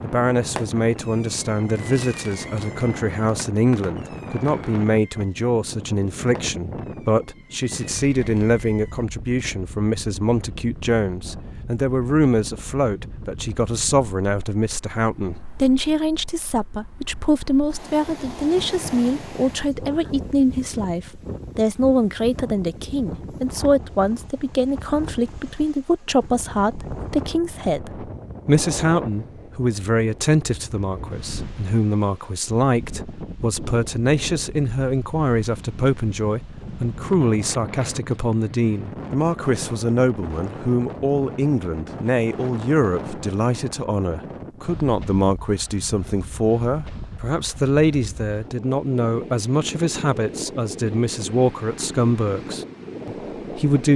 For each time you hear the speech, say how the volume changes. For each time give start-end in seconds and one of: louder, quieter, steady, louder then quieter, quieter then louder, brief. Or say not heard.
0.0-53.9 steady.